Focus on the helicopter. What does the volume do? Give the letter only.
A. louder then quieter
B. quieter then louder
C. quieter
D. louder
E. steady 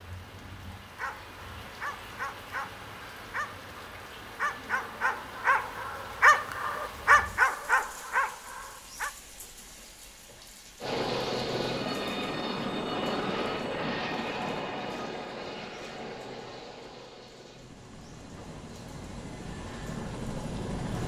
B.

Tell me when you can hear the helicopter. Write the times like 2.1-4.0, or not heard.
10.8-21.0.